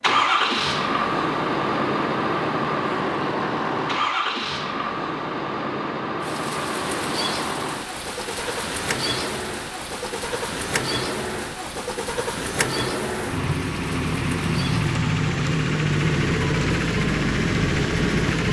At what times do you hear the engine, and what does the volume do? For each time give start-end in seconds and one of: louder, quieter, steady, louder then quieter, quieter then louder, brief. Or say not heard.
0.0-18.4 quieter then louder.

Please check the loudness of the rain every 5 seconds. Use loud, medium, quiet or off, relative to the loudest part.
off, loud, loud, medium.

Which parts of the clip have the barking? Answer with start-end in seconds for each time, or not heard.
not heard.